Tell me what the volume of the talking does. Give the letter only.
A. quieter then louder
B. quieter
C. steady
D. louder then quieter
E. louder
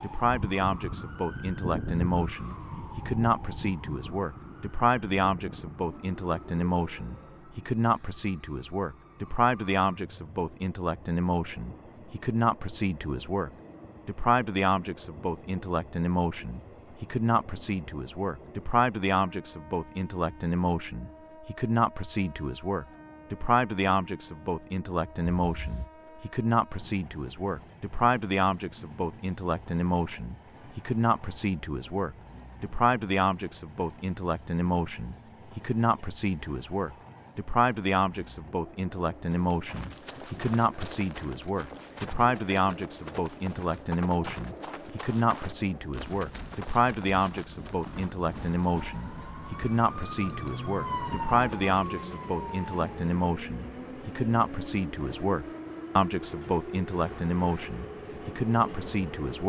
C.